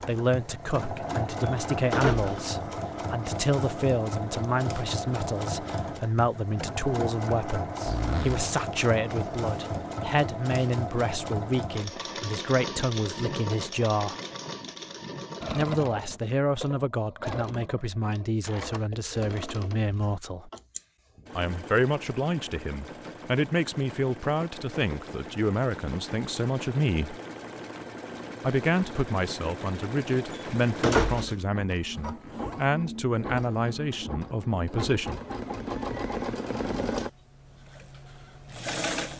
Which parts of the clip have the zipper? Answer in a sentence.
The zipper can be heard from 7.8 to 8.5 s and from 32.0 to 32.6 s.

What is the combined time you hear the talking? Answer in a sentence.
The talking can be heard for 32 seconds in total.